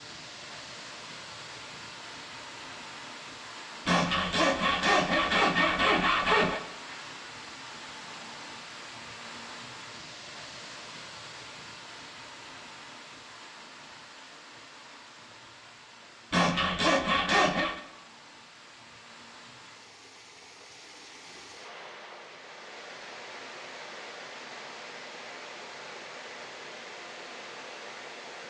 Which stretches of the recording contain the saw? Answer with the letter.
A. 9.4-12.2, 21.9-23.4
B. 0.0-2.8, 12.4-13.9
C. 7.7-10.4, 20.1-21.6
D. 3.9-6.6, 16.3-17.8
D.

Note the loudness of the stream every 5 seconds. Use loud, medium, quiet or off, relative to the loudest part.
loud, loud, loud, medium, loud, loud.